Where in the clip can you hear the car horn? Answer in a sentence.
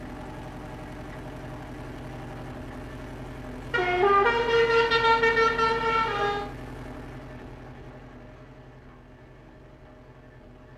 You can hear the car horn from 3.7 to 6.5 s.